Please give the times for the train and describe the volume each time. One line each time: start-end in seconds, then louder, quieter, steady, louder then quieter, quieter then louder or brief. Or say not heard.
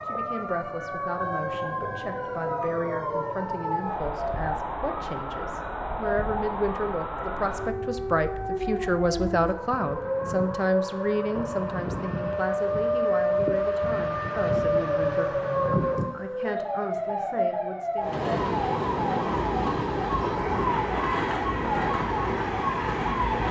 17.9-23.4 steady.